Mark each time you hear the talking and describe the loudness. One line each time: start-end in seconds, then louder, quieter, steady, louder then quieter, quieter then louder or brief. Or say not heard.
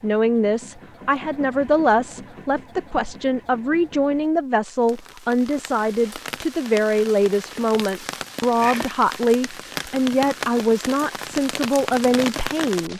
0.0-12.9 steady.